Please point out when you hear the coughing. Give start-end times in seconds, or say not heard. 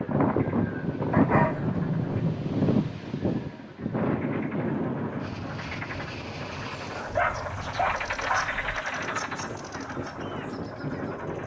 not heard.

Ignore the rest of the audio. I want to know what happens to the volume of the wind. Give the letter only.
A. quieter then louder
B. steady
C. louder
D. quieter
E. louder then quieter
A.